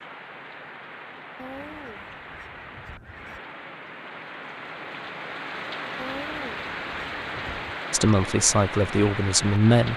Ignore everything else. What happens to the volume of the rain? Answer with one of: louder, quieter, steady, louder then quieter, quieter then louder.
louder.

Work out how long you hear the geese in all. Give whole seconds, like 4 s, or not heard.
4 s.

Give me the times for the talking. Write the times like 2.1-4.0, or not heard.
7.9-9.9.